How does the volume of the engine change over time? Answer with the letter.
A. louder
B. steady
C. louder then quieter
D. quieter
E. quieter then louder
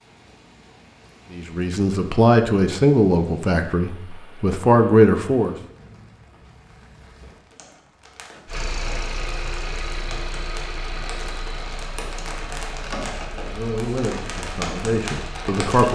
D.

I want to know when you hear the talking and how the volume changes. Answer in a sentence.
You can hear the talking from 1.3 to 5.5 s, getting quieter then louder; and briefly from 13.3 to 15.9 s.